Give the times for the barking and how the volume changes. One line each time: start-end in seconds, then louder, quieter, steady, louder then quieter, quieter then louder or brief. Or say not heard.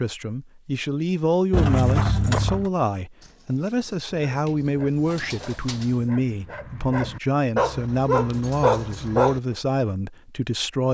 4.0-9.6 louder.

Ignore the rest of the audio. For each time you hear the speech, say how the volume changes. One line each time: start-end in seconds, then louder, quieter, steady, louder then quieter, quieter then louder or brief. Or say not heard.
0.0-10.9 steady.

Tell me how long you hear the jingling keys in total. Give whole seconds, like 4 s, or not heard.
2 s.